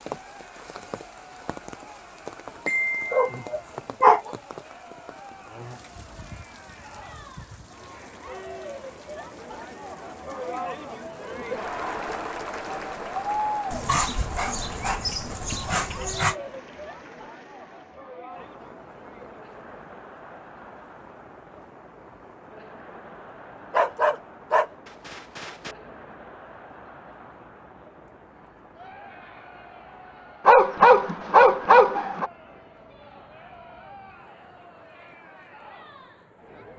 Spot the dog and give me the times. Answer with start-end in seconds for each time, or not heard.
2.6-4.3, 13.7-16.4, 23.7-25.8, 30.4-32.3.